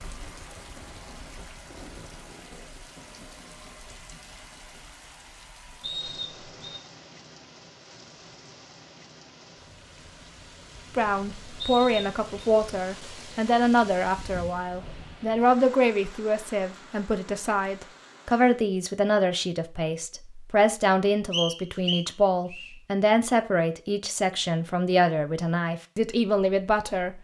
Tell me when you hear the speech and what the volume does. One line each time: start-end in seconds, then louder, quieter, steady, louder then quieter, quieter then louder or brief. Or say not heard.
10.9-27.1 steady.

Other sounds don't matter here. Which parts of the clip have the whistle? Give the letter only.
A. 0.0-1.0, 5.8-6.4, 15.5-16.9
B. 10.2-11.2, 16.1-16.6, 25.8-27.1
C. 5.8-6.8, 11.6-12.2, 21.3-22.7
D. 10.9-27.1
C.